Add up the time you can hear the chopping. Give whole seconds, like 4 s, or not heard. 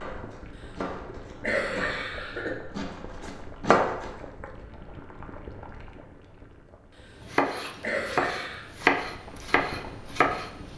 8 s.